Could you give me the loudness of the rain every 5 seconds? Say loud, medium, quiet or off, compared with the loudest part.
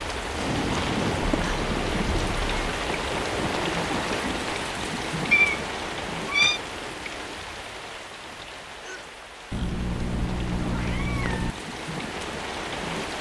loud, medium, medium.